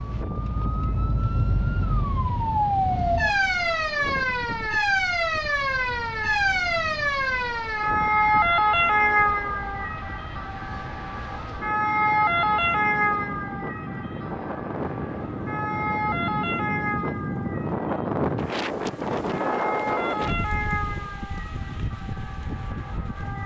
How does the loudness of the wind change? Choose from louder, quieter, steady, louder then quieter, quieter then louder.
louder.